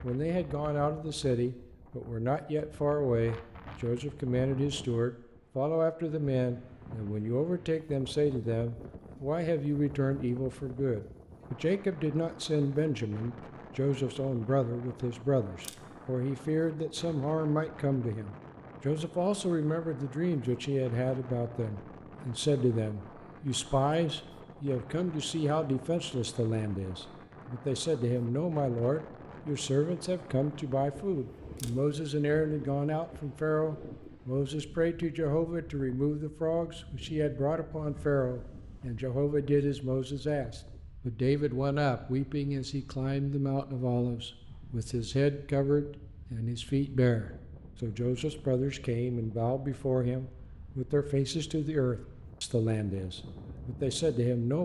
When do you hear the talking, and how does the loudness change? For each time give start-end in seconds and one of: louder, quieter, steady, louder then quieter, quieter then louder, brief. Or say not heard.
0.0-54.6 steady.